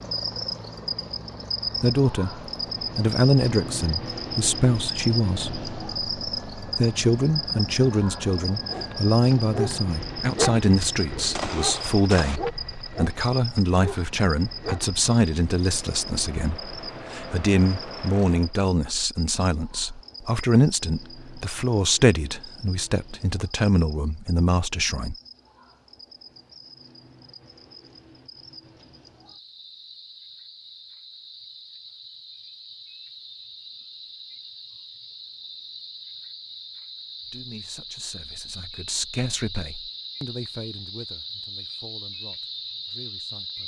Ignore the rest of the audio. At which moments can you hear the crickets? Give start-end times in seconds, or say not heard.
0.0-43.6.